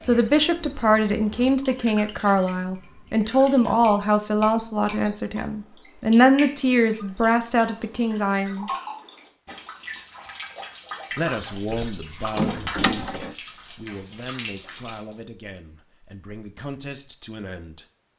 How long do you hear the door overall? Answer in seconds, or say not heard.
2 s.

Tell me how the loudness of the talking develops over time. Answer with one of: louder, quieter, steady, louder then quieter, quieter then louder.
quieter.